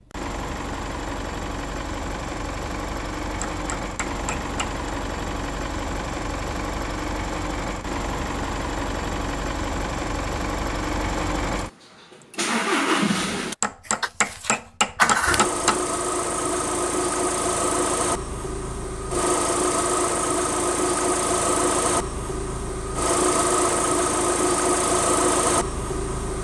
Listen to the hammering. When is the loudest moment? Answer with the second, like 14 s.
15 s.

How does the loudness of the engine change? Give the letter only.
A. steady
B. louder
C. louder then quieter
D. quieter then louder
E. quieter
B.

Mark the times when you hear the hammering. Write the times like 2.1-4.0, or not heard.
3.4-4.8, 13.6-15.8.